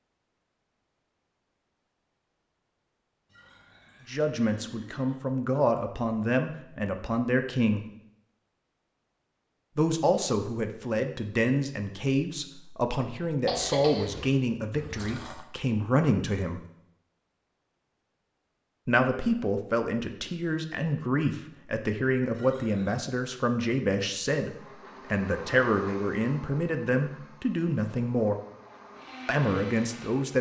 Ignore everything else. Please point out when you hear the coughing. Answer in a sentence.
You can hear the coughing from 13.4 to 14.3 s.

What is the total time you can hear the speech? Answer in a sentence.
You can hear the speech for 21 seconds altogether.